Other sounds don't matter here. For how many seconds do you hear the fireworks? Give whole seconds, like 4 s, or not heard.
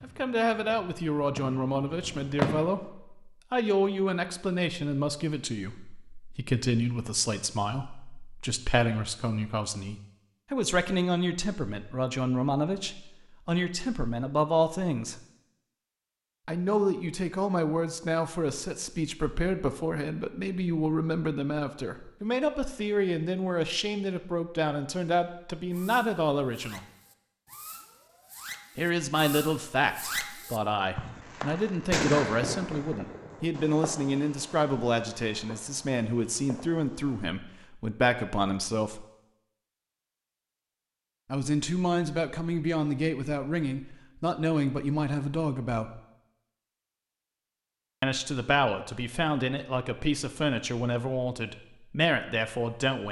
14 s.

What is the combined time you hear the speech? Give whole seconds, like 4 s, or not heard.
46 s.